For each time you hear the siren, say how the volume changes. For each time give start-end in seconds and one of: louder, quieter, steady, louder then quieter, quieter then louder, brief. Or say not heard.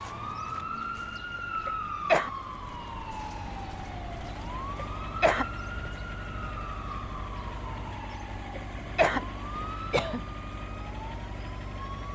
0.0-12.0 quieter.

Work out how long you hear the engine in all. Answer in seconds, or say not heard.
12 s.